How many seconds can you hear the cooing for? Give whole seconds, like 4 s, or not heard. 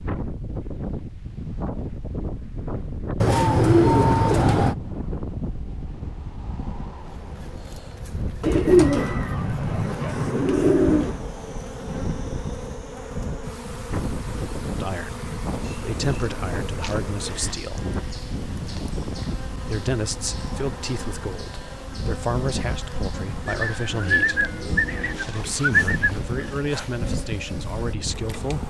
9 s.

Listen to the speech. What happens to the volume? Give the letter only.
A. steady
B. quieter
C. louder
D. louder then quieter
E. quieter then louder
A.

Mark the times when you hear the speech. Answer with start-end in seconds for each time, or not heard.
14.7-17.9, 19.6-24.4, 25.2-28.6.